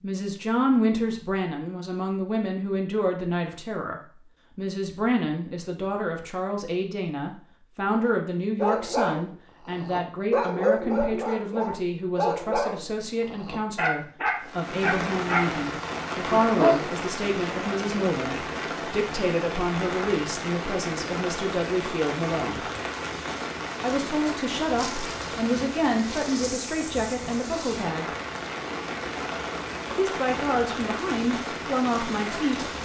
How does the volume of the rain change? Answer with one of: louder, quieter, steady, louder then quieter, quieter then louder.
steady.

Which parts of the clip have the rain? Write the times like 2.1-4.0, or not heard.
14.3-32.8.